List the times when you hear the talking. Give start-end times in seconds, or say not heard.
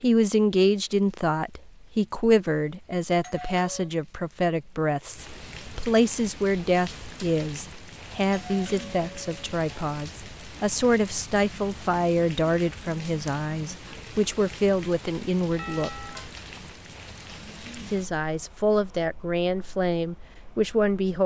0.0-15.9, 17.9-21.2.